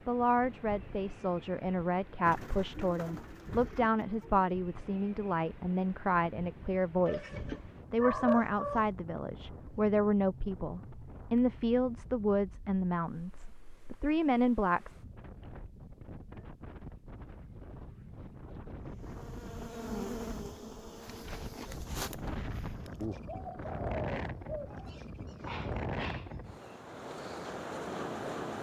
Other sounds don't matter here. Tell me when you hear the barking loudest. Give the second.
8 s.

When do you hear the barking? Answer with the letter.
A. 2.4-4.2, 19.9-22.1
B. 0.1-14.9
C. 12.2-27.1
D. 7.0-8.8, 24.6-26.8
D.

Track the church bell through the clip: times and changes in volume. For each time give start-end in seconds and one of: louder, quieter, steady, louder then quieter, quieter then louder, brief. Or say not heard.
not heard.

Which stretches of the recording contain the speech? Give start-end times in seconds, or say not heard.
0.1-14.9.